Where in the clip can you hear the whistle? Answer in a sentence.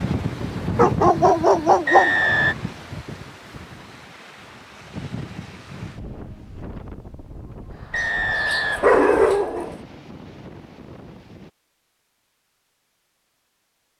You can hear the whistle from 1.9 to 2.5 s and from 7.9 to 9.4 s.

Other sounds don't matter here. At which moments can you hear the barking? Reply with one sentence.
You can hear the barking from 0.8 to 2.4 s and from 8.0 to 9.8 s.